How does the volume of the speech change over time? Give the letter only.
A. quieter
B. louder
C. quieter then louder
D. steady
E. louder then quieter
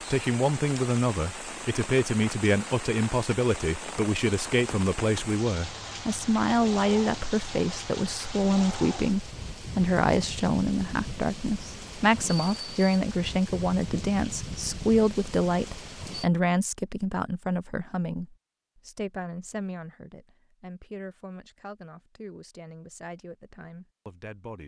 A.